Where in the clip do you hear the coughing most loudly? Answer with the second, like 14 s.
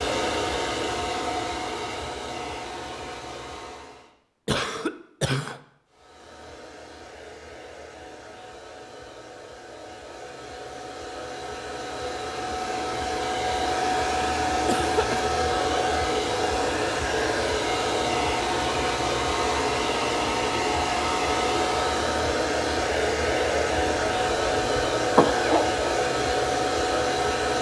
25 s.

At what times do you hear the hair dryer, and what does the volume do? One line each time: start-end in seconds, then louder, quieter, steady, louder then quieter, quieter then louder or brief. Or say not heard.
0.0-4.1 quieter
5.8-27.5 louder.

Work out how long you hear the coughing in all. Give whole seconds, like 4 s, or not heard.
4 s.